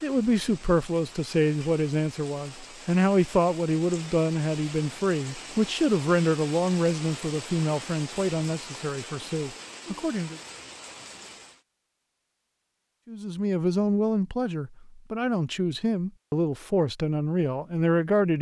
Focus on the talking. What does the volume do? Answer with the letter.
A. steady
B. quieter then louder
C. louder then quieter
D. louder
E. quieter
A.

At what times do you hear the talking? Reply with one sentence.
You can hear the talking from 0.0 to 10.4 s and from 13.1 to 18.3 s.